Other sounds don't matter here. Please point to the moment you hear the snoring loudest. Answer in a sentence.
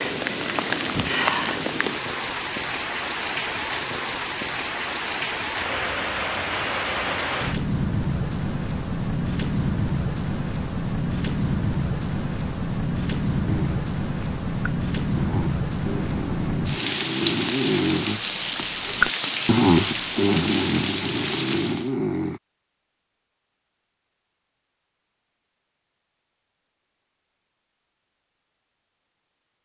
The volume of the snoring peaks at 20 seconds.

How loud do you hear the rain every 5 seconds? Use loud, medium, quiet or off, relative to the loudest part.
loud, loud, loud, loud, loud, off.